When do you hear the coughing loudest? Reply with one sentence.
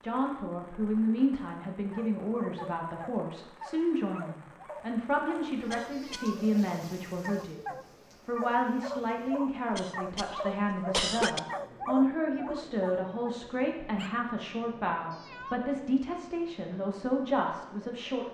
The volume of the coughing peaks at 11 seconds.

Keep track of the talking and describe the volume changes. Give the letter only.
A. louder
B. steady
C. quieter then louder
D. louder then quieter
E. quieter
B.